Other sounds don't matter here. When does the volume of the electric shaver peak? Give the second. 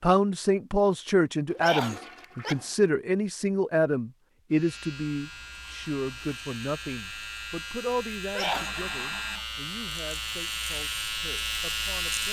12 s.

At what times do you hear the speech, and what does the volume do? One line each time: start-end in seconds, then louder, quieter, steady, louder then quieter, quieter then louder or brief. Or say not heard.
0.0-12.2 quieter.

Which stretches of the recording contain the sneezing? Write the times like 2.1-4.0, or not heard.
1.6-2.5, 8.3-8.8.